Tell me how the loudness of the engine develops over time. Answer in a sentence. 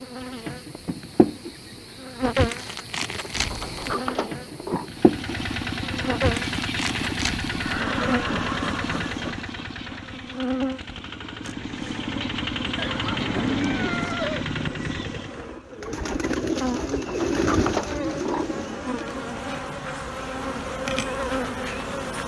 The loudness of the engine goes down, then up.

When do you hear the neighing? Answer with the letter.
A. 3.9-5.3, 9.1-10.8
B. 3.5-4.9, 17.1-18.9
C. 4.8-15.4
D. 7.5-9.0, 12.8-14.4
D.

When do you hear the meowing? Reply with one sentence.
You can't hear the meowing here.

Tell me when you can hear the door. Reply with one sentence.
The door can be heard from 3.5 to 4.9 s and from 17.1 to 18.9 s.